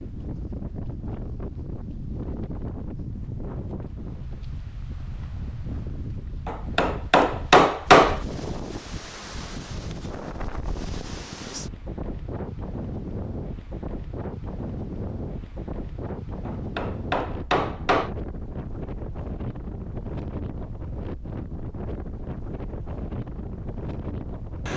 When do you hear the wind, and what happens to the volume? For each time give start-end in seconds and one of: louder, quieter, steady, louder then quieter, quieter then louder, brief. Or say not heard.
0.0-24.7 steady.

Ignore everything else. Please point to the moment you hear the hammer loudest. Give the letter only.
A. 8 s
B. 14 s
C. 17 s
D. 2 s
A.